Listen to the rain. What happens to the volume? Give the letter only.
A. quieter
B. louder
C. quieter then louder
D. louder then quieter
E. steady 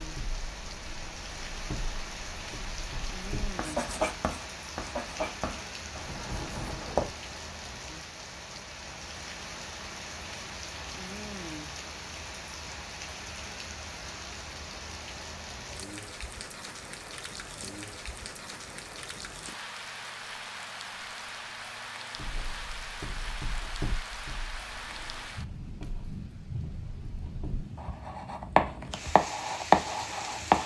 E.